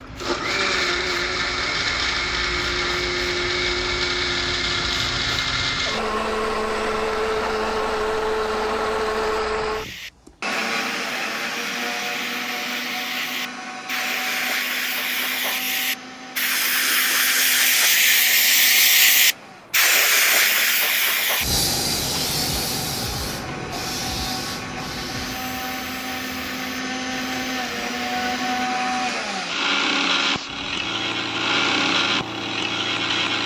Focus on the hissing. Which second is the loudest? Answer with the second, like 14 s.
19 s.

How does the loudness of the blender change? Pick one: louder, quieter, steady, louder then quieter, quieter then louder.
quieter then louder.